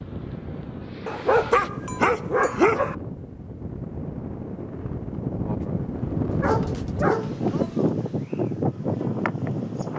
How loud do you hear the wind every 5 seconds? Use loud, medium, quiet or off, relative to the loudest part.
medium, loud.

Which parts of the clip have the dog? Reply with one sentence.
The dog can be heard from 1.1 to 3.0 s and from 6.3 to 7.8 s.